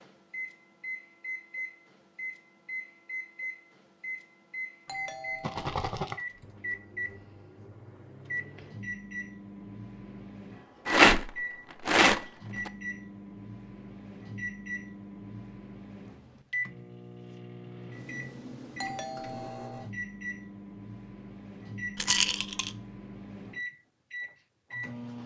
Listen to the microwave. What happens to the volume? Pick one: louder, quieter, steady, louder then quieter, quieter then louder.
steady.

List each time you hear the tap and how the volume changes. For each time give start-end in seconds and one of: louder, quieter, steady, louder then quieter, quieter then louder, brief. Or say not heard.
not heard.